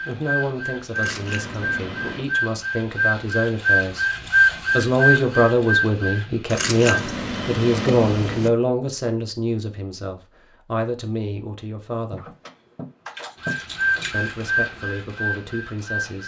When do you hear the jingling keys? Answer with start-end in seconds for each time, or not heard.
0.9-2.2, 6.5-8.5, 12.1-14.2.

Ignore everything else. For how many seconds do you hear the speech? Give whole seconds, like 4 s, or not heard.
14 s.